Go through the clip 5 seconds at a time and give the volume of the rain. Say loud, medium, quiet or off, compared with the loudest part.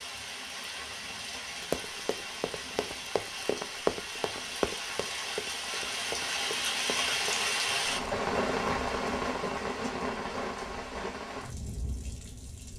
medium, loud, medium.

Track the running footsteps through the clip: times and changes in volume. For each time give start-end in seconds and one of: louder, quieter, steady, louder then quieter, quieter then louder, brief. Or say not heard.
1.6-7.5 louder then quieter.